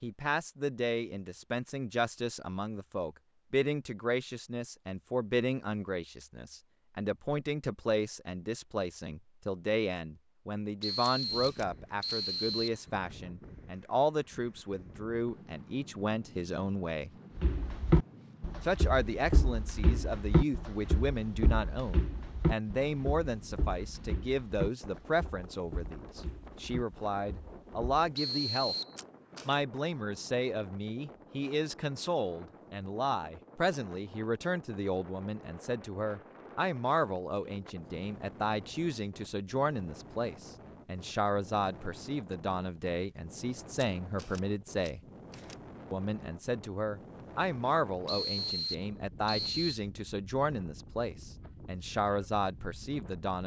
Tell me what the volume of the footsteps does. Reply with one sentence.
The loudness of the footsteps goes down.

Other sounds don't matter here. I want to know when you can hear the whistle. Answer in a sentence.
You can hear the whistle from 10.8 to 12.8 s, from 28.1 to 28.9 s and from 48.0 to 49.8 s.